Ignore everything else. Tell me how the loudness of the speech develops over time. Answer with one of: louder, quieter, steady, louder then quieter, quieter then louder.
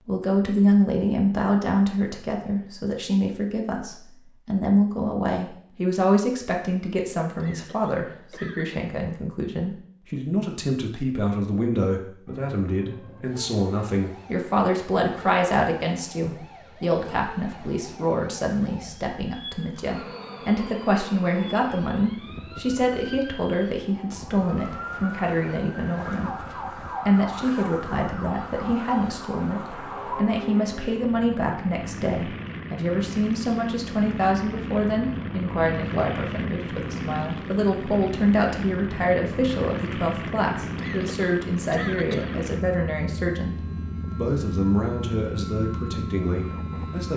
steady.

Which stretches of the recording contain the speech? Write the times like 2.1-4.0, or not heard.
0.1-47.1.